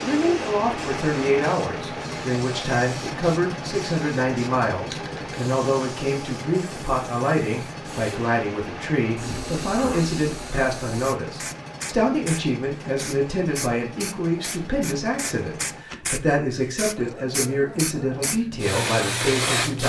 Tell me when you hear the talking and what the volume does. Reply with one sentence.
You can hear the talking from 0.0 to 19.8 s, at a steady volume.